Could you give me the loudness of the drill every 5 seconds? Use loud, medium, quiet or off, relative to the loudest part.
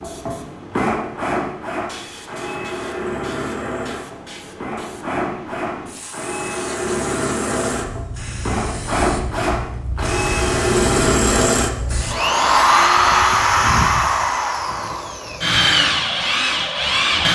medium, medium, loud, loud.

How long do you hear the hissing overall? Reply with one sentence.
You can hear the hissing for 12 seconds altogether.